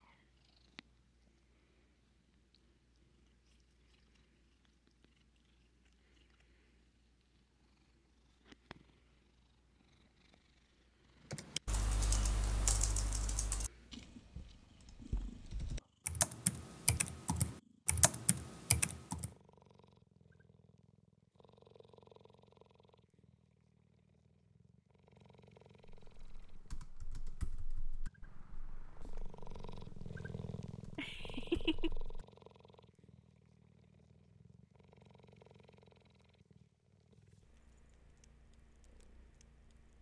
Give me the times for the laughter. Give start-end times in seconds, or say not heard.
30.9-31.9.